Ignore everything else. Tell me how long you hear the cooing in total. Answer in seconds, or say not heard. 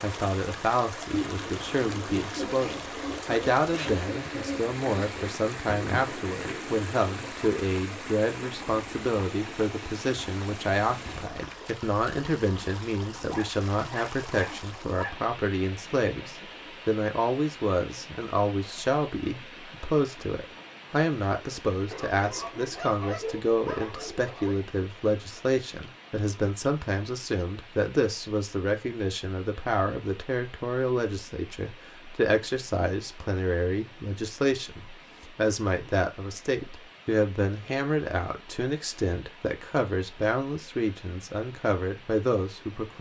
6 s.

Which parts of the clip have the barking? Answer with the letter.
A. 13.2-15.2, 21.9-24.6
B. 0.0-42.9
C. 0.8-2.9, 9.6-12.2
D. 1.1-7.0
A.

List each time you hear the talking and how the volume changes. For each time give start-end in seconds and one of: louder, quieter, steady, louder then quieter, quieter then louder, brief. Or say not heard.
0.0-42.9 steady.